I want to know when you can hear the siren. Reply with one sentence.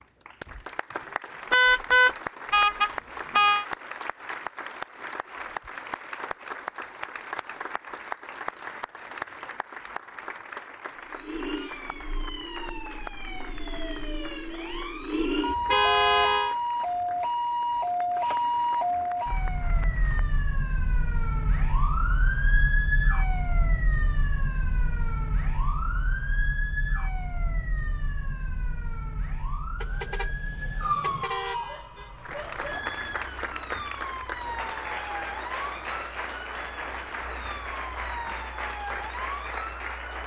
You can hear the siren from 10.9 to 40.2 s.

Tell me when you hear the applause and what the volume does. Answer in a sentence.
You can hear the applause from 0.0 to 20.4 s, getting quieter; and from 32.1 to 40.2 s, at a steady volume.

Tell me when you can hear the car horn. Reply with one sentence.
You can hear the car horn from 1.5 to 3.6 s, from 15.4 to 16.6 s and from 29.8 to 31.6 s.